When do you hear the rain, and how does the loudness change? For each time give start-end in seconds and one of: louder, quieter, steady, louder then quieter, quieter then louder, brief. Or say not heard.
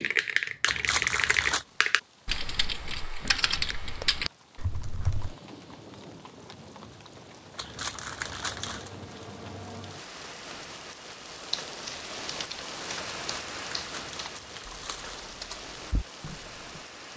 0.0-17.1 louder.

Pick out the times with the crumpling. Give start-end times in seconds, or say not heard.
0.7-1.6, 7.5-8.9, 13.2-15.3.